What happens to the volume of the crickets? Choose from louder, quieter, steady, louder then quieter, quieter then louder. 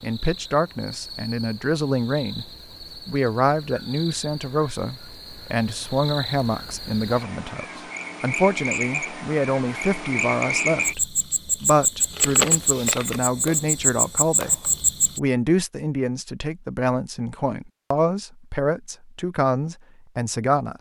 louder.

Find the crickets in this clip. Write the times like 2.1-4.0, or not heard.
0.0-15.2.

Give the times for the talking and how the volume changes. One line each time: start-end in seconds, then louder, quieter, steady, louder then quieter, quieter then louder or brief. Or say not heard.
0.0-20.7 steady.